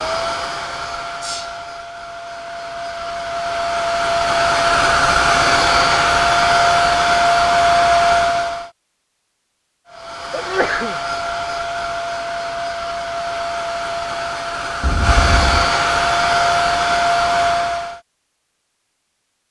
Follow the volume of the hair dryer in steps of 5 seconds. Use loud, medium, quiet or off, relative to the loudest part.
medium, loud, medium, loud.